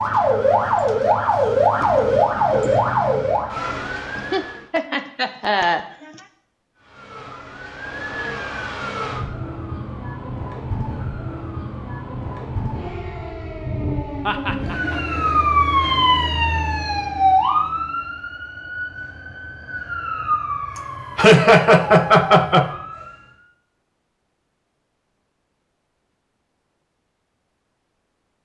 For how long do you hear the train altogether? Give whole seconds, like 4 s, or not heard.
not heard.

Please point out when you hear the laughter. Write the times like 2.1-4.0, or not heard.
4.2-6.2, 14.2-15.0, 21.1-22.7.